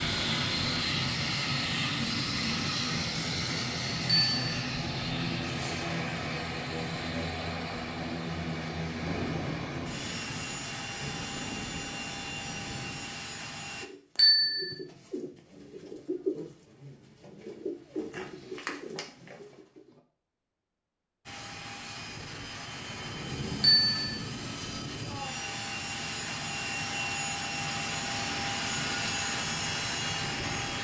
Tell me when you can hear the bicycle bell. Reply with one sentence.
You can hear the bicycle bell from 4.0 to 4.5 s, from 14.2 to 14.7 s and from 23.6 to 24.1 s.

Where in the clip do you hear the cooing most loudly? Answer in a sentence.
The volume of the cooing peaks at 16 seconds.